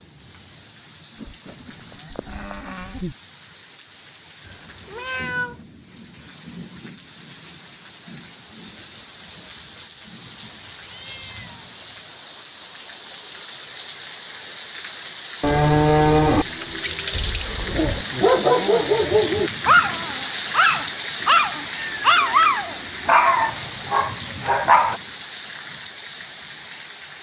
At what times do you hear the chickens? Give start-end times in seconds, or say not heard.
not heard.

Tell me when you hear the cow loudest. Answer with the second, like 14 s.
16 s.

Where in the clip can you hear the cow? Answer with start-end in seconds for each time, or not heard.
1.1-3.1, 15.4-17.4.